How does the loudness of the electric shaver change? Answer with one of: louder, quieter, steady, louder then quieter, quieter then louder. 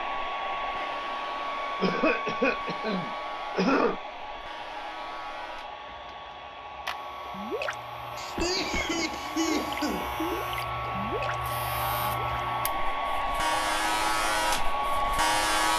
louder.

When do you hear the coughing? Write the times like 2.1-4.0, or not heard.
1.8-4.0, 8.2-10.1.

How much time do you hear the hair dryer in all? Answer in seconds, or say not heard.
16 s.